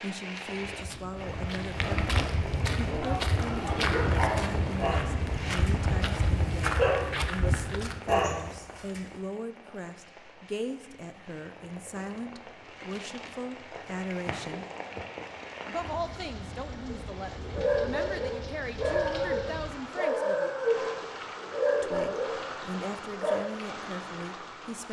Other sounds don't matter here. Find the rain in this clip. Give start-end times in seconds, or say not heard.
0.0-24.8.